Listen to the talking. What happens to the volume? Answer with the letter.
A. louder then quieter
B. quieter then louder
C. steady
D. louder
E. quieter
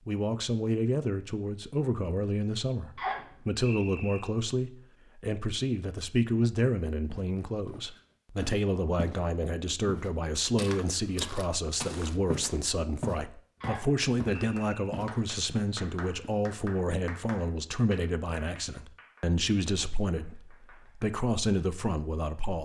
C.